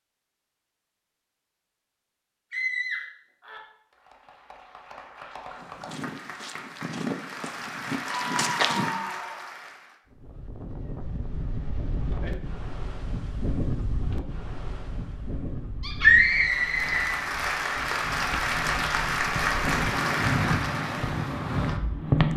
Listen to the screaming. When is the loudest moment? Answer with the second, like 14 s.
16 s.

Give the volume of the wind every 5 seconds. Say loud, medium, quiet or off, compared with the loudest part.
off, off, medium, medium, loud.